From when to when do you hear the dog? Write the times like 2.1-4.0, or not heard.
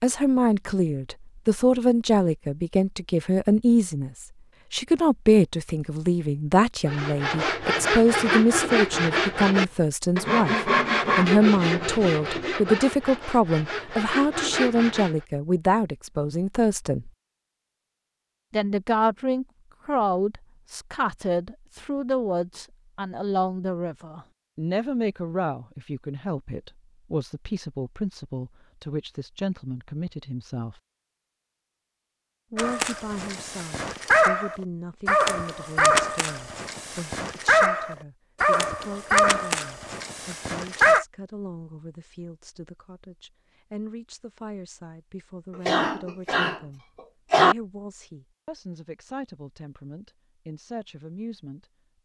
32.5-41.0.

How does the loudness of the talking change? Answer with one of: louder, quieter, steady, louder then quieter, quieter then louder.
quieter.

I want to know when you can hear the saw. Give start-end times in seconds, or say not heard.
6.8-15.2.